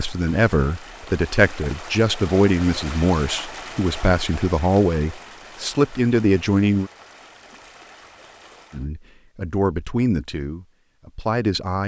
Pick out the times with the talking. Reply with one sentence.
You can hear the talking from 0.0 to 6.9 s and from 8.7 to 11.8 s.